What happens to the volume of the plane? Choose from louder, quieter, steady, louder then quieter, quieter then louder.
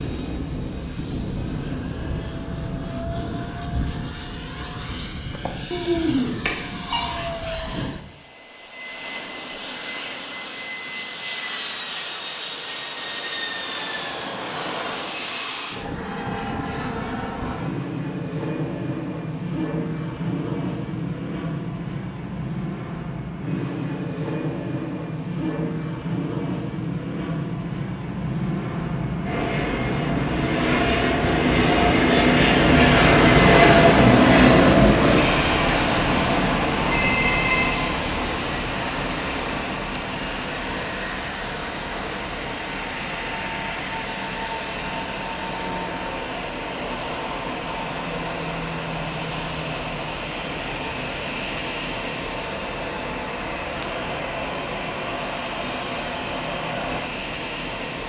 louder then quieter.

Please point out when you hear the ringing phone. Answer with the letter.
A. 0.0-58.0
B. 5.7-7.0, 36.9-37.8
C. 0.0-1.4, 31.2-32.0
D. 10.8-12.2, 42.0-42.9
B.